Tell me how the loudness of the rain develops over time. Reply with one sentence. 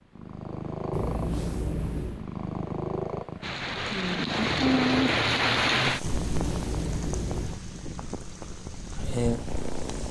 The loudness of the rain goes down.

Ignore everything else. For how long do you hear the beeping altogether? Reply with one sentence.
You can hear the beeping for 3 seconds altogether.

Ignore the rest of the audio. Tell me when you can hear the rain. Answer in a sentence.
The rain can be heard from 3.4 to 10.0 s.